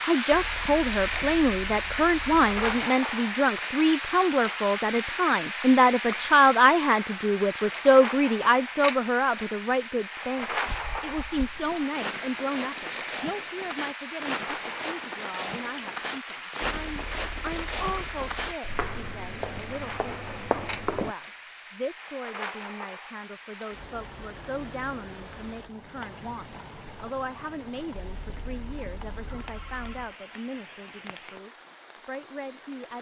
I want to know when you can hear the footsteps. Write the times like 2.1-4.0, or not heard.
10.4-21.1.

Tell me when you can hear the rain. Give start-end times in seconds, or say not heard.
0.0-32.9.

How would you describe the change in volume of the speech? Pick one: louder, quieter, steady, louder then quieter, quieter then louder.
quieter.